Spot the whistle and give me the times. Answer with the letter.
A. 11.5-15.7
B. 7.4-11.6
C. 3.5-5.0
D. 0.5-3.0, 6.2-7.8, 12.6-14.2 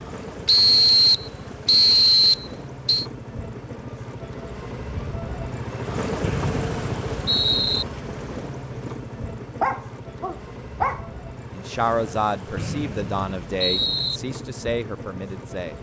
D.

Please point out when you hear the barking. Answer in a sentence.
The barking can be heard from 9.6 to 11.1 s.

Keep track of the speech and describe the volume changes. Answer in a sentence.
The volume of the speech goes down, then up.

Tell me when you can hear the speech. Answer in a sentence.
You can hear the speech from 11.5 to 15.7 s.